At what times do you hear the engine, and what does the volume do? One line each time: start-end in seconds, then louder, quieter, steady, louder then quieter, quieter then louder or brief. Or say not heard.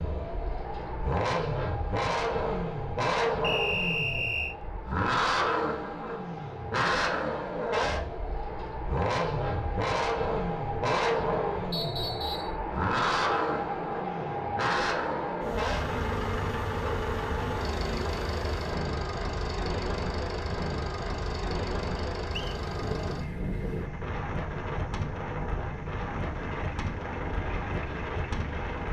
0.0-28.8 quieter.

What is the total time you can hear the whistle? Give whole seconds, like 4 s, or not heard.
3 s.